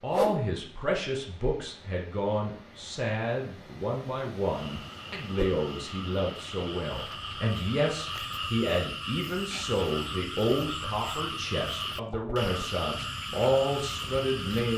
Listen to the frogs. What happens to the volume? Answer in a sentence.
The volume of the frogs goes up.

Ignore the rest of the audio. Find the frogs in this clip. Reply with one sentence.
You can hear the frogs from 4.3 to 14.7 s.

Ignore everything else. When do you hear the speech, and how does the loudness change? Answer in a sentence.
The speech can be heard from 0.0 to 14.7 s, at a steady volume.